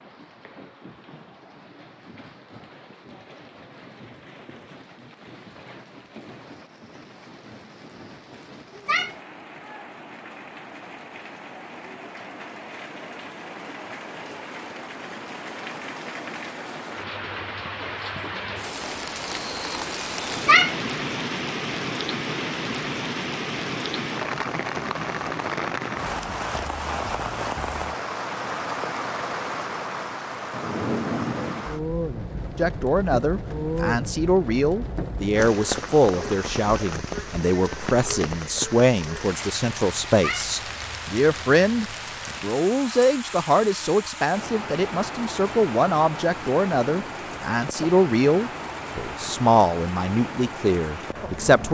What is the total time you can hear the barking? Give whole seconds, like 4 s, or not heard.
not heard.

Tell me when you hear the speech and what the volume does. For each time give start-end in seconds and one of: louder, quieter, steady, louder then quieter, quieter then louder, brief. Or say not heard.
32.5-51.6 steady.